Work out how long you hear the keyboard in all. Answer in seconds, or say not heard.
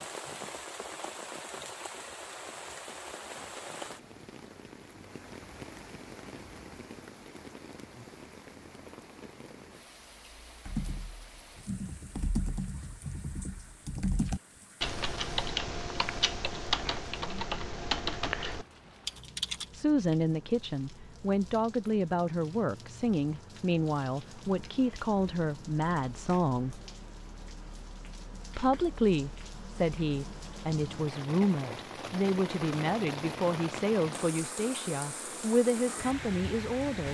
9 s.